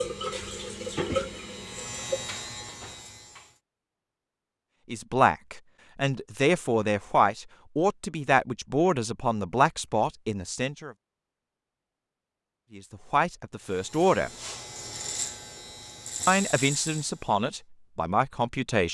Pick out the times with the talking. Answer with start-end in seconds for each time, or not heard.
4.9-10.9, 12.7-14.3, 16.2-18.8.